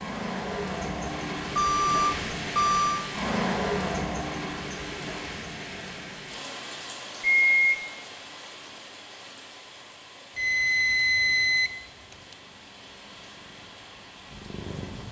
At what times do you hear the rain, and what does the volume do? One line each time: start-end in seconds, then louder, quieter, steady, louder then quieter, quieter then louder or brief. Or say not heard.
0.0-15.0 quieter.